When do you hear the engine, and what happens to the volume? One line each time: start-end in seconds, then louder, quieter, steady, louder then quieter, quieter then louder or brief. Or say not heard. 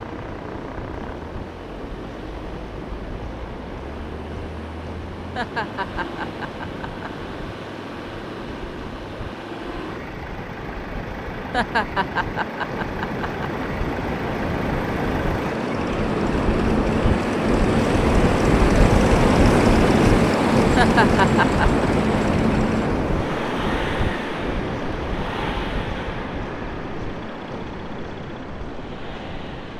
0.0-29.7 louder then quieter.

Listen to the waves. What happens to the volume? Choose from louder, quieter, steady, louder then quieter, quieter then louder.
louder then quieter.